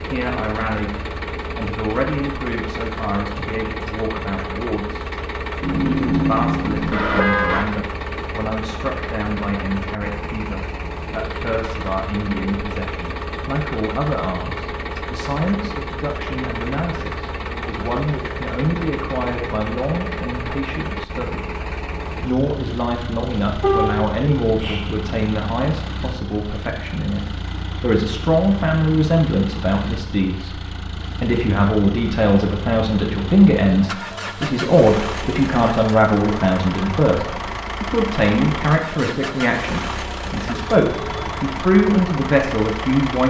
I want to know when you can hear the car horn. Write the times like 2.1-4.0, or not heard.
5.6-7.7, 23.6-24.9, 40.5-41.5.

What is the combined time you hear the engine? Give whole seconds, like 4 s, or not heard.
43 s.